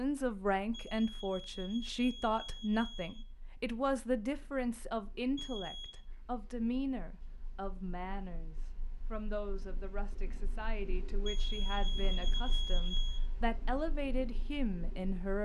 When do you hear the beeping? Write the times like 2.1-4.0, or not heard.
0.7-3.2, 5.3-6.0, 11.2-13.2.